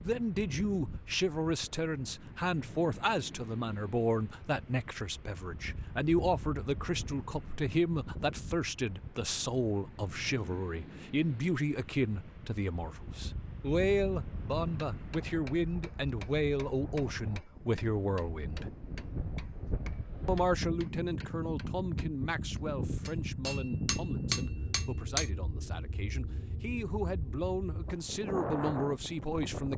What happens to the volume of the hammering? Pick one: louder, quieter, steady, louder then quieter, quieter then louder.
quieter then louder.